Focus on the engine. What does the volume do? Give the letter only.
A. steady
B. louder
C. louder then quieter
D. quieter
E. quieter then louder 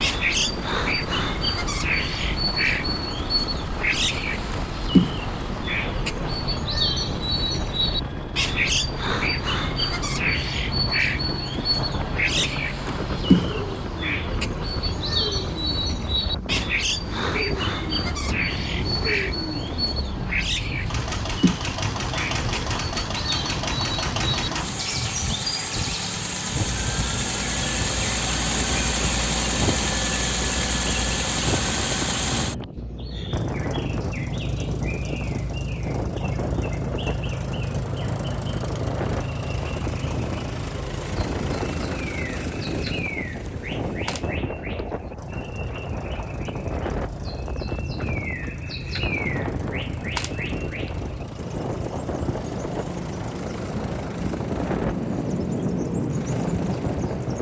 C.